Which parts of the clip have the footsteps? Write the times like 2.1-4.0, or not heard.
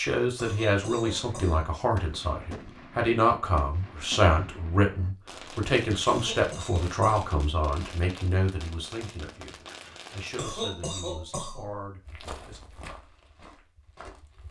12.1-14.4.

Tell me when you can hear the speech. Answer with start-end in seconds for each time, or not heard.
0.0-12.6.